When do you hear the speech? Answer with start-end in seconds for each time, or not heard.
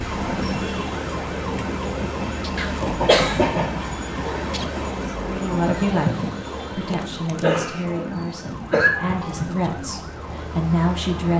5.2-11.3.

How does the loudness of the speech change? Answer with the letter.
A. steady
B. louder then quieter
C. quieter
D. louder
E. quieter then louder
E.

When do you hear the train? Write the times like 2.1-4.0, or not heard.
0.0-11.3.